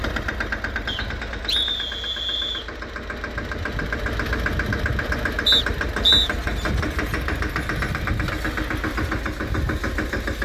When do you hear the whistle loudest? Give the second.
6 s.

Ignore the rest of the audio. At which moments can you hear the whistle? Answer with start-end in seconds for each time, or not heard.
0.8-2.7, 5.5-6.3.